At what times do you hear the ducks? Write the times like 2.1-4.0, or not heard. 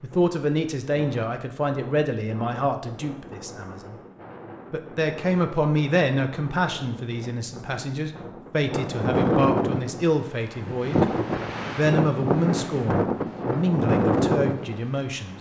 not heard.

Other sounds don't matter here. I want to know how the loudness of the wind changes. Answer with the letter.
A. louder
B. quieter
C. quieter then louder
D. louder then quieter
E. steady
A.